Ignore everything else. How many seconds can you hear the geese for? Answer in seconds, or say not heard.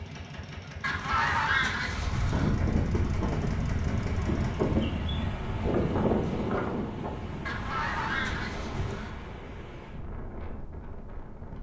3 s.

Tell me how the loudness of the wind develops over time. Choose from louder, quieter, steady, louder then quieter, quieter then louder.
quieter.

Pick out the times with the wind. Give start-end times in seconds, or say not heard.
2.1-11.5.